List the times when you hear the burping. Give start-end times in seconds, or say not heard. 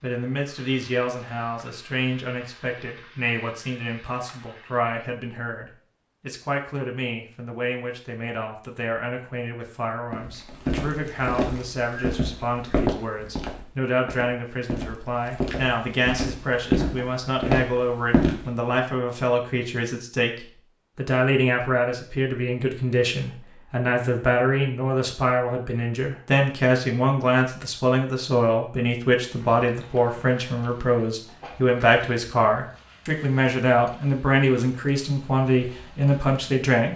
not heard.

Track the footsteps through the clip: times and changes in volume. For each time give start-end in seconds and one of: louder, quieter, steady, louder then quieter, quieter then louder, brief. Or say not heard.
10.1-18.5 quieter then louder.